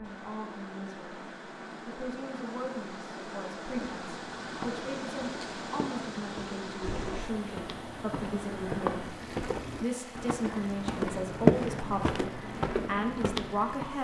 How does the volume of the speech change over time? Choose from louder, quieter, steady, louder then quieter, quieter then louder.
louder.